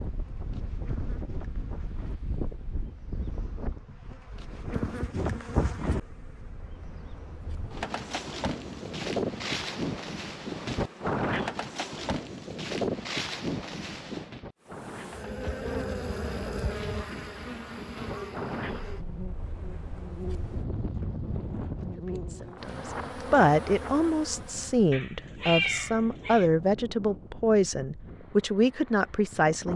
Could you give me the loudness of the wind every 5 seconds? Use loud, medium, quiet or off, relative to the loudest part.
medium, loud, loud, medium, medium, quiet.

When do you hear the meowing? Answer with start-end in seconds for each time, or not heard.
24.9-26.5.